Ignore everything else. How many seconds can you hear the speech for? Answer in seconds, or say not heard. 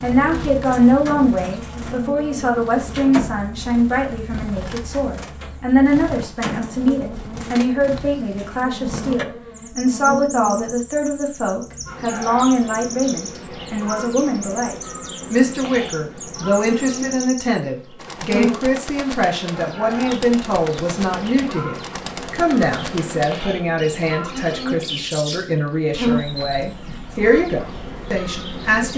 29 s.